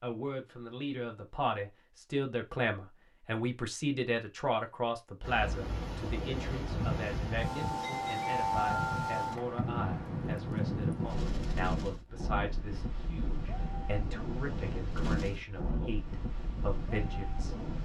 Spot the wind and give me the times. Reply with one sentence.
You can hear the wind from 5.2 to 17.8 s.